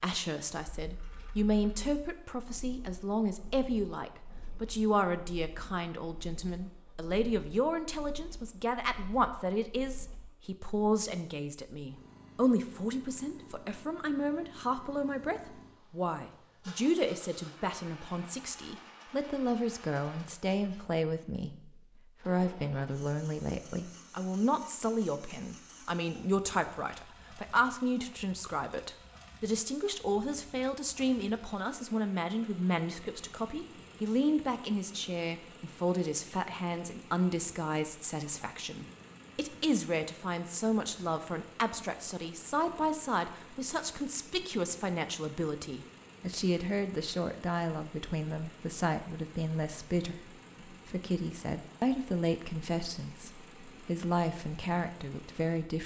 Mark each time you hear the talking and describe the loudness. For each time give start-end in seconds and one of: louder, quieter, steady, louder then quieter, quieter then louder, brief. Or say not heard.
0.0-55.8 steady.